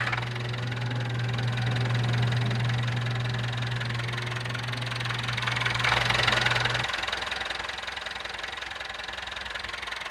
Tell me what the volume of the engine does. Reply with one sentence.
The loudness of the engine goes up, then down.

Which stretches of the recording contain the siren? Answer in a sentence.
You can hear the siren from 0.0 to 6.8 s.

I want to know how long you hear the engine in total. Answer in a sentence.
You can hear the engine for 10 seconds altogether.